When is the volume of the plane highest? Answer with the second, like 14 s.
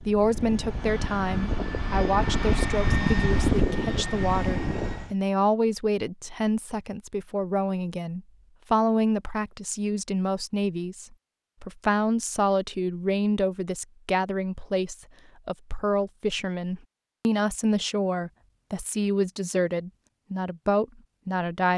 3 s.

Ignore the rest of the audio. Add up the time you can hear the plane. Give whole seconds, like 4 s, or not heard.
5 s.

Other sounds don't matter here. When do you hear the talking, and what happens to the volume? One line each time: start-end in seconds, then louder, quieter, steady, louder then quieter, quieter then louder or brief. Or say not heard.
0.0-21.7 steady.